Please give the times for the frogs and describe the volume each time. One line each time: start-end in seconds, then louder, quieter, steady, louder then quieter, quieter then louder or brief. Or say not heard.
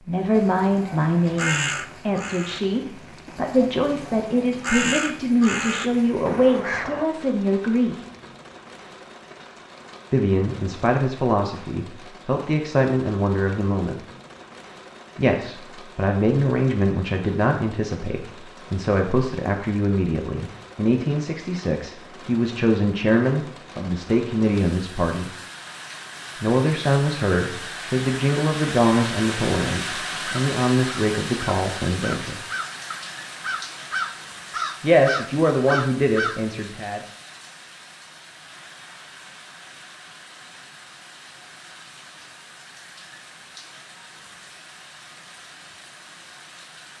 not heard.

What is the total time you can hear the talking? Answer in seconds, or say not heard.
30 s.